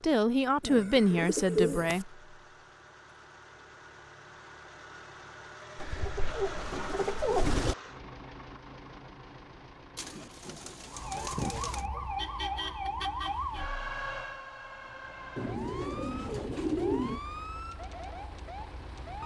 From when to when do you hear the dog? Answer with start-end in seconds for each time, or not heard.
not heard.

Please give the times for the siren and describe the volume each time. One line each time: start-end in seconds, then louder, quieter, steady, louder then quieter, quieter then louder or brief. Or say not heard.
10.8-19.2 quieter.